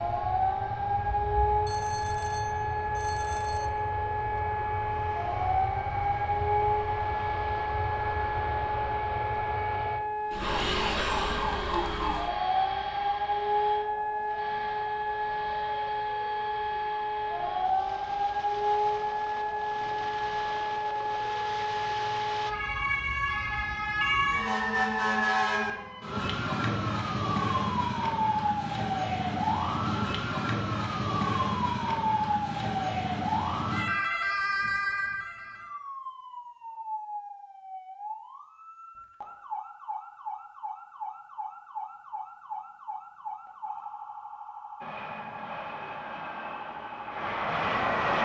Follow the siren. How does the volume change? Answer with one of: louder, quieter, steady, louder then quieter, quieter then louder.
quieter.